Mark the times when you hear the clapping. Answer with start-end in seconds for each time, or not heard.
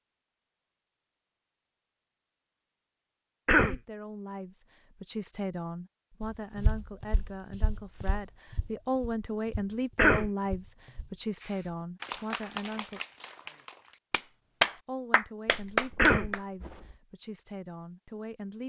11.4-16.9.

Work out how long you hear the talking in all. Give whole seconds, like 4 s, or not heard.
13 s.